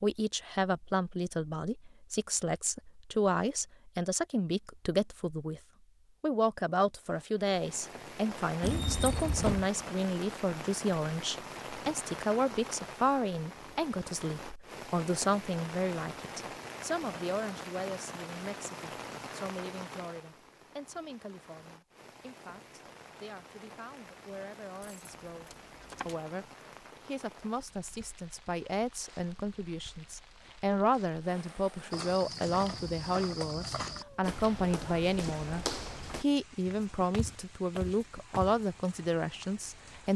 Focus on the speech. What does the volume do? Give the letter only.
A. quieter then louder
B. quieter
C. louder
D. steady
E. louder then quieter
A.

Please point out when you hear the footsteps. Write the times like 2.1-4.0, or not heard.
31.9-38.6.